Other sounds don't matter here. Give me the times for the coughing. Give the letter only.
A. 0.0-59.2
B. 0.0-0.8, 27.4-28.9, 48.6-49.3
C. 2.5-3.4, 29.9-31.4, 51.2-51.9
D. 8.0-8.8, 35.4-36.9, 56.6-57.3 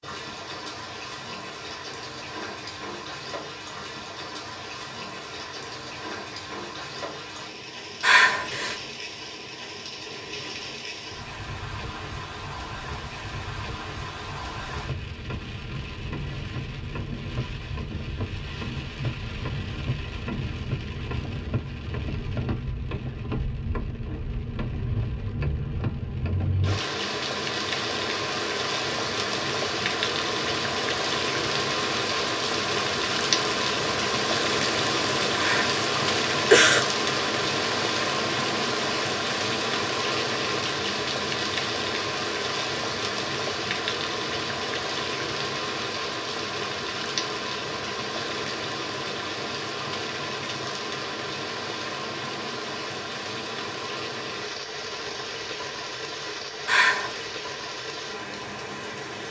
D.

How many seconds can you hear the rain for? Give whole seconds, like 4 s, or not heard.
59 s.